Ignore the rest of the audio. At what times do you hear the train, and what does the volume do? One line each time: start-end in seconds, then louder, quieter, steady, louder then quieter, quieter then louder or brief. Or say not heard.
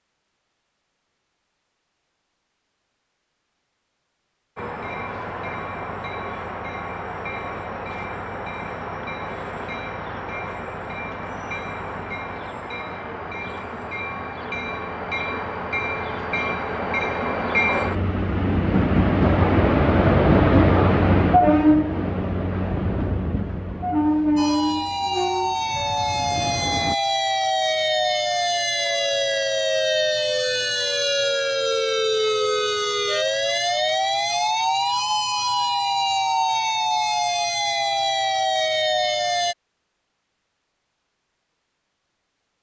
4.5-26.9 louder then quieter.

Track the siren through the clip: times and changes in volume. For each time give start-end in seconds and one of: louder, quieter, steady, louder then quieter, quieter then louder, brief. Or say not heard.
24.4-39.5 steady.